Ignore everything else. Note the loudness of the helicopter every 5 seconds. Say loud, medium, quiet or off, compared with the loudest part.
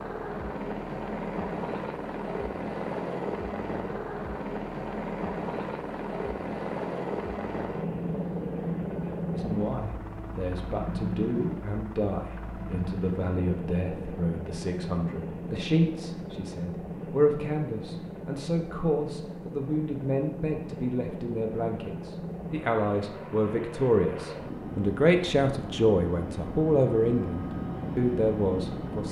loud, loud, loud, medium, medium, loud.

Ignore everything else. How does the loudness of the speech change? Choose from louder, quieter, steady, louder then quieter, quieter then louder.
louder.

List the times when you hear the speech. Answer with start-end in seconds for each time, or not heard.
9.3-29.0.